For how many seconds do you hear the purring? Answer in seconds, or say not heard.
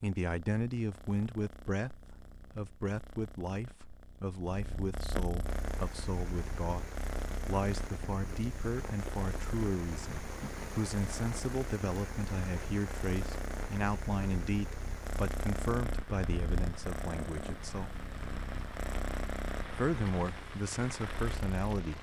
22 s.